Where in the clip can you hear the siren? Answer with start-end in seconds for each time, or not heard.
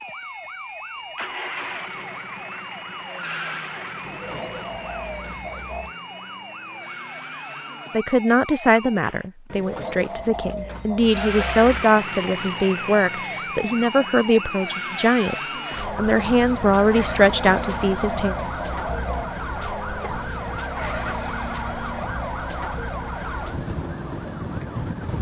0.0-9.2, 11.0-25.1.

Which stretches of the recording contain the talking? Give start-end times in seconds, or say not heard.
7.9-18.4.